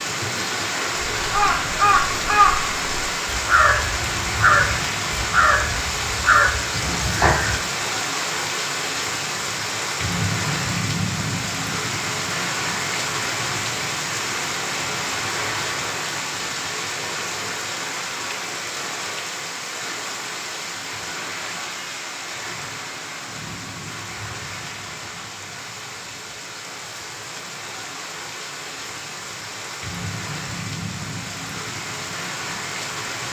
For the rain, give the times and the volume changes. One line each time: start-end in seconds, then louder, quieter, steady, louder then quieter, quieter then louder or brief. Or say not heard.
0.0-33.2 quieter.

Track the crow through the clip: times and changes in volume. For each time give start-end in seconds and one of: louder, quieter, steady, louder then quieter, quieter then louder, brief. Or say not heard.
1.1-7.6 steady.